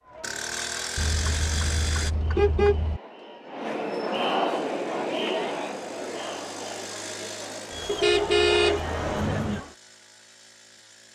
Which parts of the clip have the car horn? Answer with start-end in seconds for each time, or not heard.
0.9-3.0, 7.8-9.6.